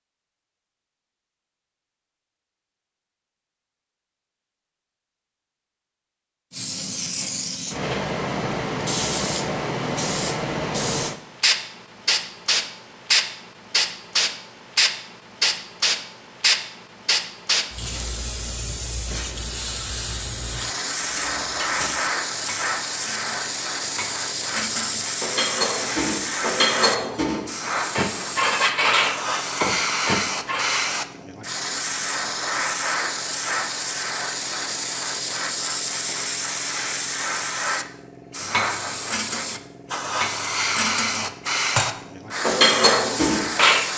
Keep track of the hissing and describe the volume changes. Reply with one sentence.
The volume of the hissing stays about the same.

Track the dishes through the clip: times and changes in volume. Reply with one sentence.
The dishes can be heard from 21.0 to 30.9 s, getting louder; and from 38.4 to 43.9 s, getting louder.